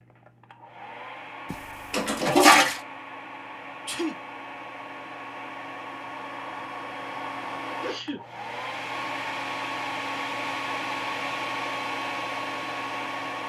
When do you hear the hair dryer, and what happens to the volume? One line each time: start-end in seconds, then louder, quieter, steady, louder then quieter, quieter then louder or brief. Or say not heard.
0.0-13.4 louder.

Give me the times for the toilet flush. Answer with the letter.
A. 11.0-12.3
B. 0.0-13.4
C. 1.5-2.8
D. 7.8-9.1
C.